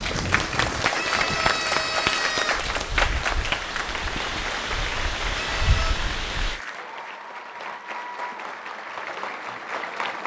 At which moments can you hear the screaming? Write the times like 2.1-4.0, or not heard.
0.9-2.8, 5.5-6.0.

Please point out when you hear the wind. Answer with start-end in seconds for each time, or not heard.
0.0-6.6.